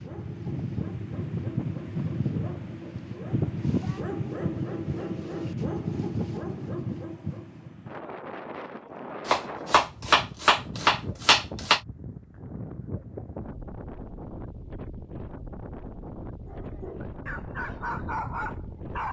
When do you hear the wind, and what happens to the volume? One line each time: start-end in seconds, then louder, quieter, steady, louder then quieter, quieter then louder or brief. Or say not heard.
0.0-19.0 quieter.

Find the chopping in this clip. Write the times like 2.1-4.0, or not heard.
9.2-11.8.